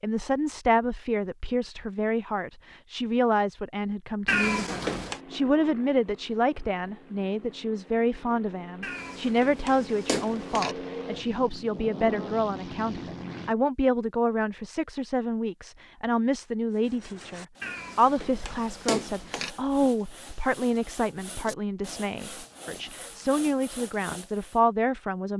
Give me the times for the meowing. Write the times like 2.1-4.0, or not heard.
4.2-5.2, 8.8-10.8, 17.6-19.5.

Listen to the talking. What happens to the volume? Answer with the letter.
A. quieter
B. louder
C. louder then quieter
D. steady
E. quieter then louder
D.